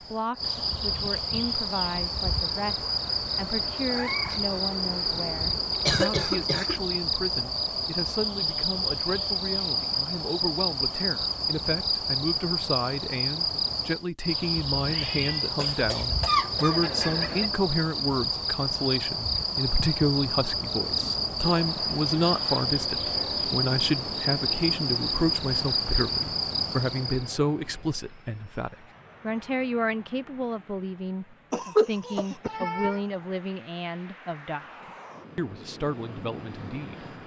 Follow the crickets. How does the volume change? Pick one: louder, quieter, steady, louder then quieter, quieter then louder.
steady.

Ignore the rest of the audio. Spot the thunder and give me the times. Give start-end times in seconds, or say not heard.
not heard.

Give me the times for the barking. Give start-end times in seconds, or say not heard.
not heard.